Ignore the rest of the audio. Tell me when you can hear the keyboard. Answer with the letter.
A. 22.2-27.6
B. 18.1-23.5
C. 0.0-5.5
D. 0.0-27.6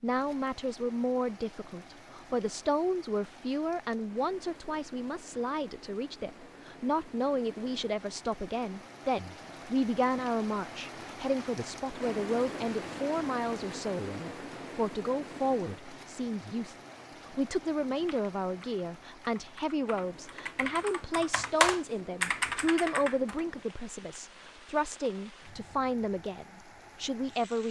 B.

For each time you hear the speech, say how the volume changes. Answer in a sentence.
The speech can be heard from 0.0 to 27.6 s, at a steady volume.